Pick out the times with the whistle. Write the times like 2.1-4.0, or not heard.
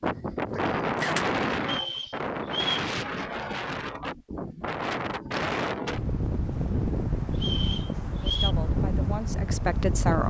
1.6-2.9, 7.3-8.6.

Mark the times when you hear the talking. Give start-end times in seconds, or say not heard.
8.2-10.2.